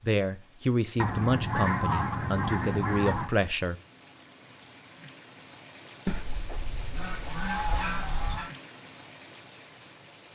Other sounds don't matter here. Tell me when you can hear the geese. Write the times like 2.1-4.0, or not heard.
0.9-3.3, 6.0-8.5.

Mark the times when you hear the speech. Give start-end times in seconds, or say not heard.
0.0-3.8.